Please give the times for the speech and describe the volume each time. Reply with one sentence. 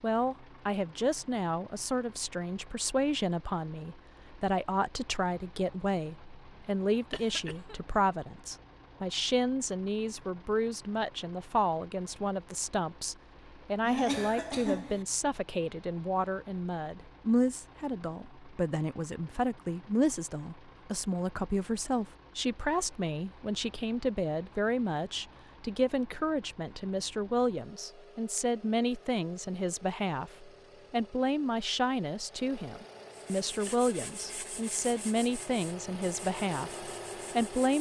The speech can be heard from 0.0 to 37.7 s, at a steady volume.